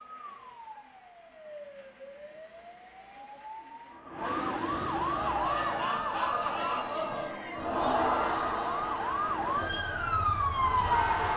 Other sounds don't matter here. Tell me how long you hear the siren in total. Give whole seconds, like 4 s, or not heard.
11 s.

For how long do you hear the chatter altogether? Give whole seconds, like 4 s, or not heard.
6 s.